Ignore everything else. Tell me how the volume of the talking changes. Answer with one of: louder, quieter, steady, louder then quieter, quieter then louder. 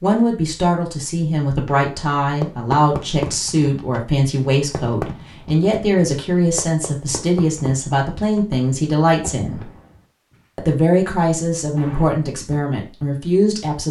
steady.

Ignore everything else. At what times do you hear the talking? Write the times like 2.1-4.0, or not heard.
0.0-9.7, 10.6-13.8.